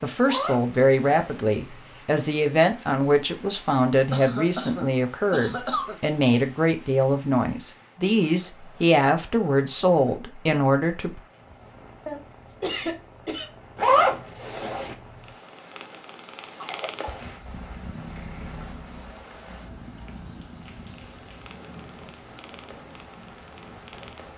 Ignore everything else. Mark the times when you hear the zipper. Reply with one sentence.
The zipper can be heard from 0.2 to 1.4 s and from 13.8 to 14.9 s.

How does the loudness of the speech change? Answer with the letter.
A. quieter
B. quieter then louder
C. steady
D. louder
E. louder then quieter
C.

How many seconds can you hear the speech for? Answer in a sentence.
The speech can be heard for 11 seconds in total.